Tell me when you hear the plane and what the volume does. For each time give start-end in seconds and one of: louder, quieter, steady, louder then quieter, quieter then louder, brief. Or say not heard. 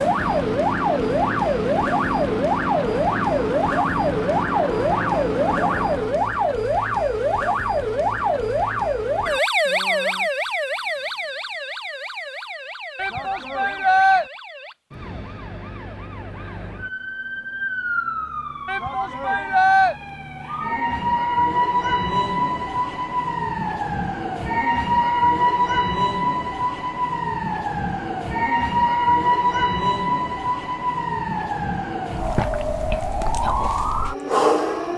0.0-6.3 steady.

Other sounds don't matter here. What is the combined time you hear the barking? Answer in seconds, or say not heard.
not heard.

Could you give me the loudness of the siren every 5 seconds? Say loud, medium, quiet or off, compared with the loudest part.
loud, loud, medium, medium, loud, loud, loud.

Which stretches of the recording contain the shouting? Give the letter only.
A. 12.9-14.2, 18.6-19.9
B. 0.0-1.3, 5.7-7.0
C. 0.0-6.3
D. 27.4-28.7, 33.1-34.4
A.